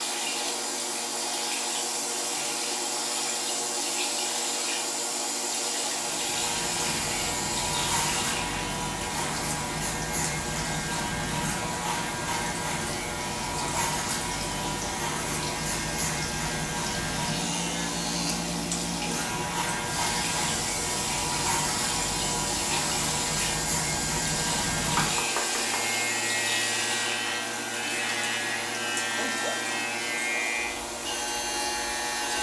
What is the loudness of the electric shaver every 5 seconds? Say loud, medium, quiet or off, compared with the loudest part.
off, loud, loud, loud, loud, loud, loud.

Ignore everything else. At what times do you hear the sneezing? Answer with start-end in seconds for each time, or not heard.
29.1-29.6.